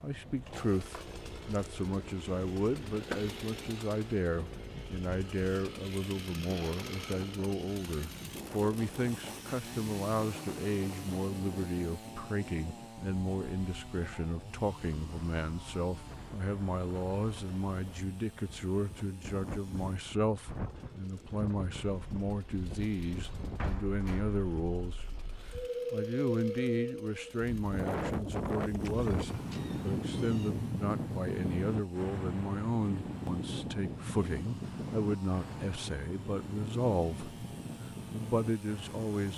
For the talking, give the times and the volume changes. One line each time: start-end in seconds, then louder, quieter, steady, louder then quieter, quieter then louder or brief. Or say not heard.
0.0-25.1 steady
25.9-39.3 steady.